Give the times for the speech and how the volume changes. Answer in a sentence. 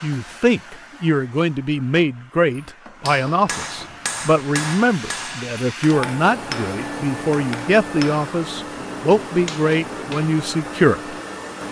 You can hear the speech from 0.0 to 11.2 s, at a steady volume.